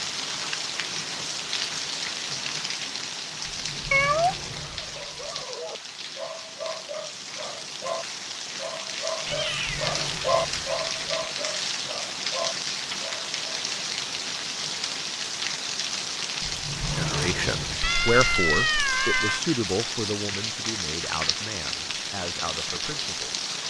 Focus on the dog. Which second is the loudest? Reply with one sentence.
The loudest moment of the dog is at 10 seconds.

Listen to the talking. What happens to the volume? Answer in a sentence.
The loudness of the talking goes down.